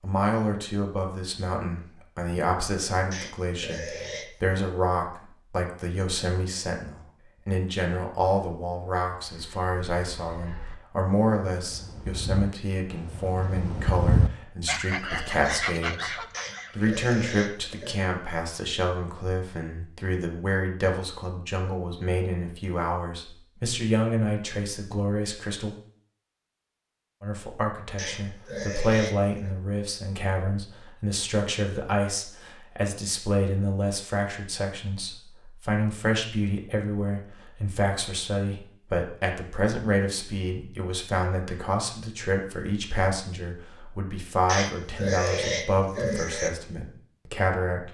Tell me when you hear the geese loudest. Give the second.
14 s.